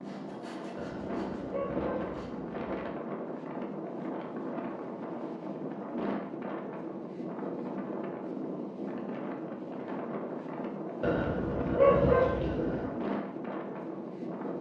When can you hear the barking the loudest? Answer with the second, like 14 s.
12 s.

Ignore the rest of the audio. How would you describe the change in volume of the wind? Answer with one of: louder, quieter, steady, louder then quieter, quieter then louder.
steady.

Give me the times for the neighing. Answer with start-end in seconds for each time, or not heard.
not heard.